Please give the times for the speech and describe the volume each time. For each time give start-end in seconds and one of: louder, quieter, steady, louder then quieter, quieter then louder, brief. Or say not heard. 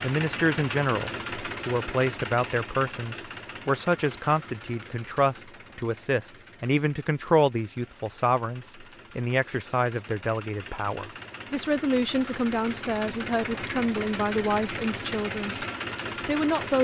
0.0-15.7 steady
16.2-16.7 brief.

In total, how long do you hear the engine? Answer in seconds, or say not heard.
17 s.